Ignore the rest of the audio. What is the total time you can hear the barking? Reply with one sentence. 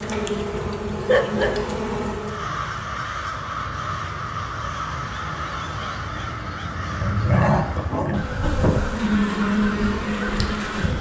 You can hear the barking for 3 seconds altogether.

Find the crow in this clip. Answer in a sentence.
You can hear the crow from 2.1 to 10.9 s.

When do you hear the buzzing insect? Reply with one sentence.
The buzzing insect can be heard from 0.0 to 2.5 s and from 8.2 to 10.9 s.